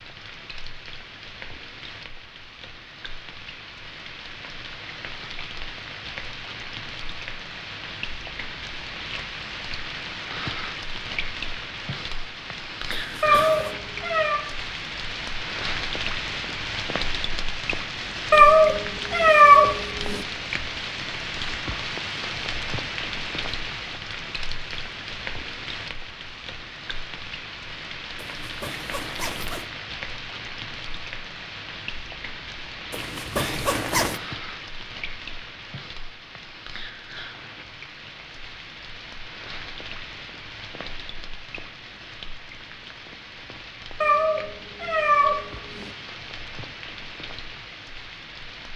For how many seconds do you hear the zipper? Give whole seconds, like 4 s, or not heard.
4 s.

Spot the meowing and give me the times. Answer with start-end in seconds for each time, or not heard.
13.2-14.4, 18.3-20.2, 44.0-45.9.